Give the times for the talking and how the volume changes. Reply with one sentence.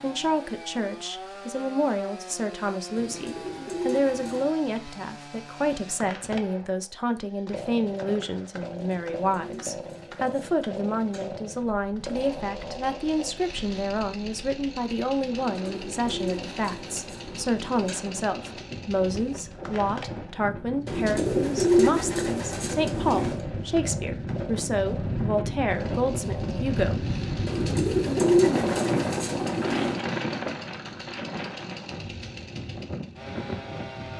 The talking can be heard from 0.0 to 27.1 s, at a steady volume.